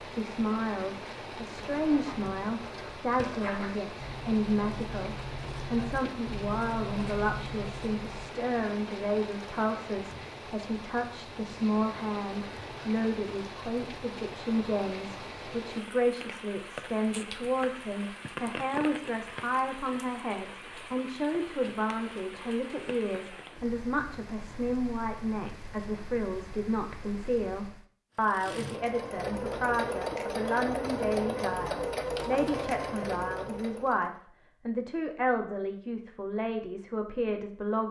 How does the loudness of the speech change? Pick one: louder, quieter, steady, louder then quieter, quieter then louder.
steady.